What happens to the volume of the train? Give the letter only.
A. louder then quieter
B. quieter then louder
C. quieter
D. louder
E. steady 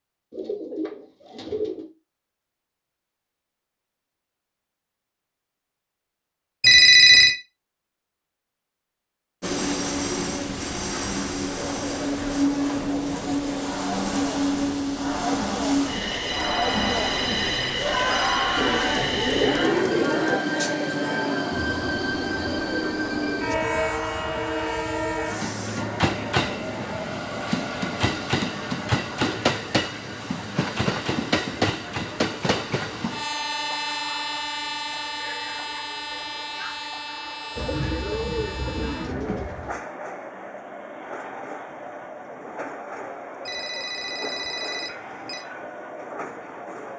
C.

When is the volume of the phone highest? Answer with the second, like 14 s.
7 s.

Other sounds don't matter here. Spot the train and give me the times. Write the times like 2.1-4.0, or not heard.
9.4-46.9.